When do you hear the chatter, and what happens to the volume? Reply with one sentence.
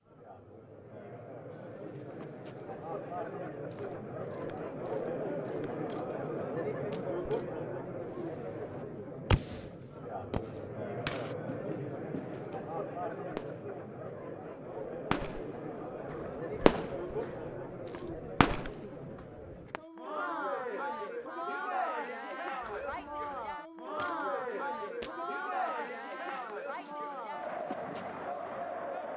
You can hear the chatter from 0.0 to 29.1 s, at a steady volume.